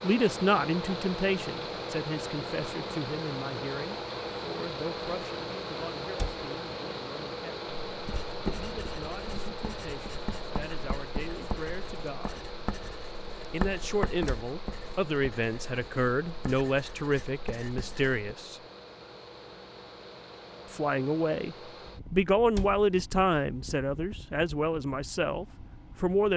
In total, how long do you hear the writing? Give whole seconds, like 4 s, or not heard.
10 s.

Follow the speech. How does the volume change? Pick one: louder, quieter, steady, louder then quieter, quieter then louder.
quieter then louder.